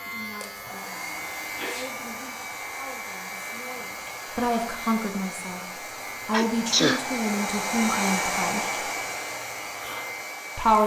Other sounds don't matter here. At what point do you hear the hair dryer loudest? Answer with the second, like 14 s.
8 s.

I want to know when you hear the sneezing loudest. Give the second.
7 s.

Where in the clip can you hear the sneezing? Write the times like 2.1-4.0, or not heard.
0.7-1.9, 6.3-7.0.